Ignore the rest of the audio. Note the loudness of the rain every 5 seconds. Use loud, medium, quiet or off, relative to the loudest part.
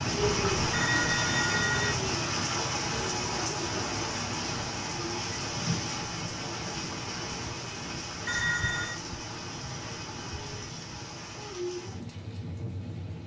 loud, medium, medium.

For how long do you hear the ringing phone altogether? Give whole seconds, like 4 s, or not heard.
2 s.